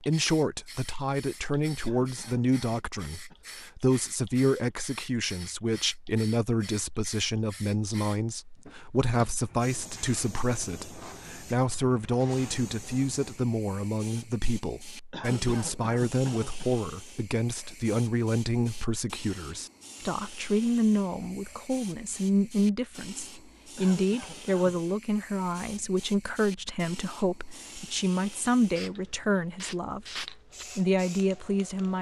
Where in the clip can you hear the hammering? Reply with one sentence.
The hammering can't be heard in this clip.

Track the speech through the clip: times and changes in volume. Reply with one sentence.
You can hear the speech from 0.0 to 31.9 s, at a steady volume.